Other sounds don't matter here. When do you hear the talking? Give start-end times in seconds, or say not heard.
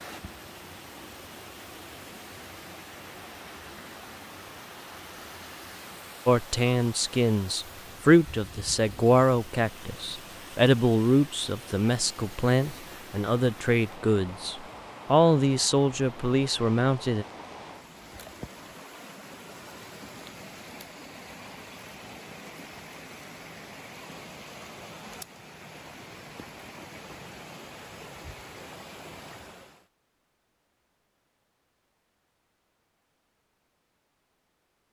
6.2-17.2.